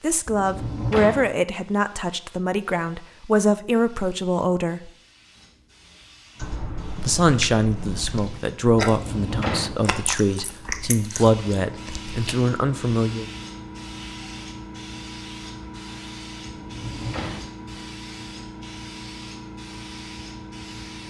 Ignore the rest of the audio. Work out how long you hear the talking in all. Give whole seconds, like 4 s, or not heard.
11 s.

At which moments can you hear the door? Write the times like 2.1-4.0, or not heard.
0.2-1.3, 8.8-9.8, 16.6-17.5.